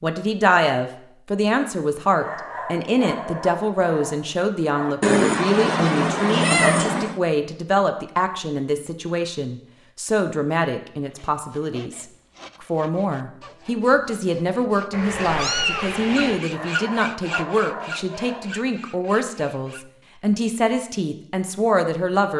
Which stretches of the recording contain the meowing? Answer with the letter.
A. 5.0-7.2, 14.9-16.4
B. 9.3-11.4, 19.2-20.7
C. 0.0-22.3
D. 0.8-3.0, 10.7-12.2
A.